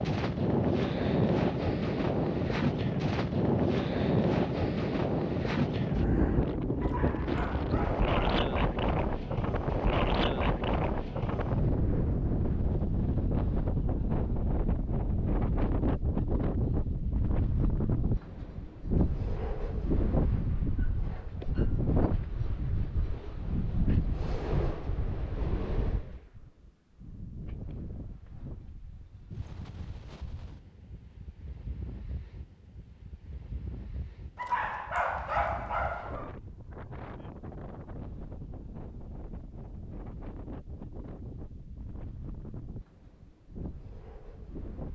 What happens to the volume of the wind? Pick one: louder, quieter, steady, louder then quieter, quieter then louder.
quieter.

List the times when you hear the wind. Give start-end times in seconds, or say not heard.
0.0-44.9.